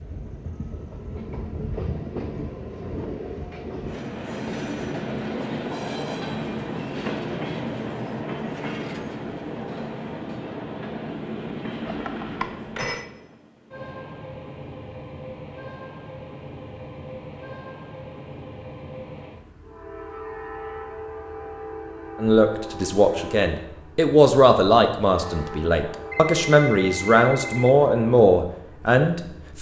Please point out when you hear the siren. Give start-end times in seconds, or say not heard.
not heard.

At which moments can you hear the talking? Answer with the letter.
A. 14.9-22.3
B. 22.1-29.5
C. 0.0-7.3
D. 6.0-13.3
B.